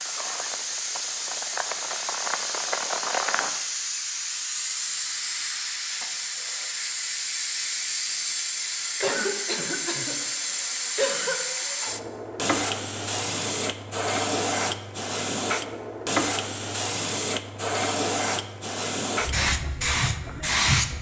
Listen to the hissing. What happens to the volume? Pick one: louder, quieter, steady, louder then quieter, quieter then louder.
steady.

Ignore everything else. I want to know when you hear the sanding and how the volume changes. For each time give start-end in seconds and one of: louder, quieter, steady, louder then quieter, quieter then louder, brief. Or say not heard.
not heard.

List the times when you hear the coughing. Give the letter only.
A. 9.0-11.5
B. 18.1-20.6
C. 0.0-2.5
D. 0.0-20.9
A.